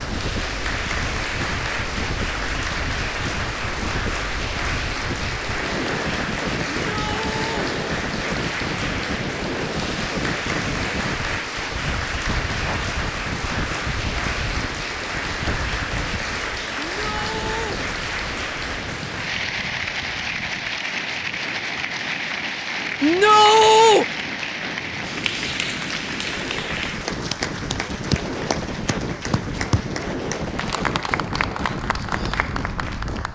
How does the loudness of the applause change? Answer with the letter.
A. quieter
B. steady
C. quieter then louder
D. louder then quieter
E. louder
B.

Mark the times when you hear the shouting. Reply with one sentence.
You can hear the shouting from 6.8 to 7.7 s, from 16.8 to 17.8 s and from 23.0 to 24.1 s.